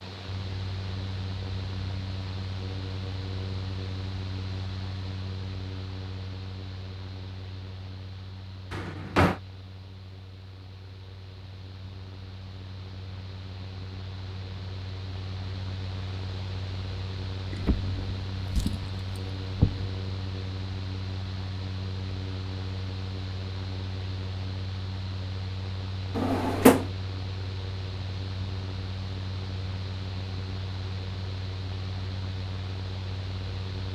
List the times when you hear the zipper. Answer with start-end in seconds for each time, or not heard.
not heard.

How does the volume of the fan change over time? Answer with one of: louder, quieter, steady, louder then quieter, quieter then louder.
quieter then louder.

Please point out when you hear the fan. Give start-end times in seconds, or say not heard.
0.0-33.9.